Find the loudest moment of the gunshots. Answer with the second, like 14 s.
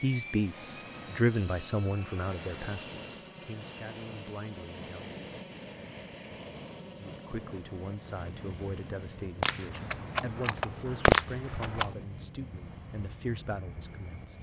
11 s.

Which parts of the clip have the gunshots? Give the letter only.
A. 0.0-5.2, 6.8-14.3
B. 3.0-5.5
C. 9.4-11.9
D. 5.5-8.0
C.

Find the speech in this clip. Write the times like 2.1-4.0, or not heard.
0.0-5.2, 6.8-14.3.